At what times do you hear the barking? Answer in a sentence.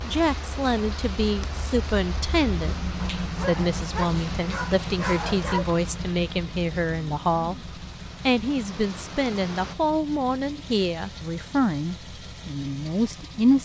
You can hear the barking from 3.2 to 5.7 s.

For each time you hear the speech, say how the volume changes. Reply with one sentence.
You can hear the speech from 0.0 to 13.6 s, at a steady volume.